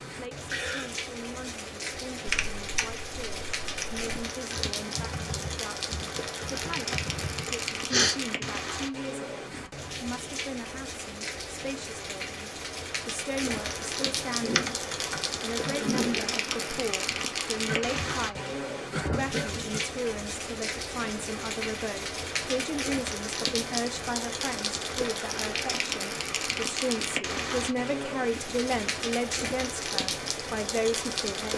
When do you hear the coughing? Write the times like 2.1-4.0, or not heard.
0.5-0.9, 17.6-20.0.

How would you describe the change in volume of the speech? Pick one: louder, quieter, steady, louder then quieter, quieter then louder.
louder.